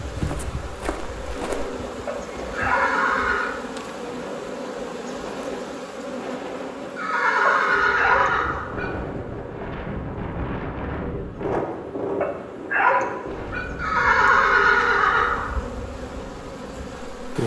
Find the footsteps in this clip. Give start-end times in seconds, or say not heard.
0.1-1.7.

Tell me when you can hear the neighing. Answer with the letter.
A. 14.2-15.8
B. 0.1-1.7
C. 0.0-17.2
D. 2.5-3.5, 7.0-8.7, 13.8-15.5
D.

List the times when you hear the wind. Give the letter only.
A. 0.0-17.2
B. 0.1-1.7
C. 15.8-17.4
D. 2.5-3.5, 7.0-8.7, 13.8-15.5
A.